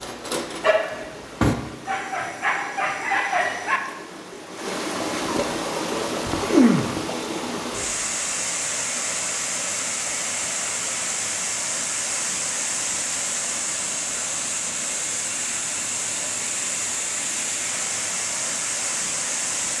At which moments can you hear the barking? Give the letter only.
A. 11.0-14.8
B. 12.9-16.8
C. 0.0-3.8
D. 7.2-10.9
C.